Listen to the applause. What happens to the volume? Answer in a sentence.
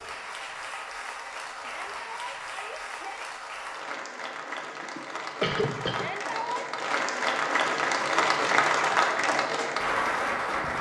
The volume of the applause goes up.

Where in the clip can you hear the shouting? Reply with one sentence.
The shouting can be heard from 1.6 to 3.2 s and from 5.9 to 6.7 s.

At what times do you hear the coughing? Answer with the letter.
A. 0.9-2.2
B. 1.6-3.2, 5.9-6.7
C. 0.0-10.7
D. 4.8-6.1
D.